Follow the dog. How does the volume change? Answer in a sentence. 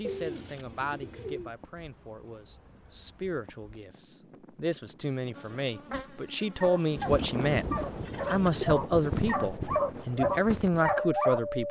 The volume of the dog goes up.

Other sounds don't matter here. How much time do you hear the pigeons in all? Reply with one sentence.
You can hear the pigeons for 3 seconds altogether.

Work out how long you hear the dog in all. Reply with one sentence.
You can hear the dog for 5 seconds altogether.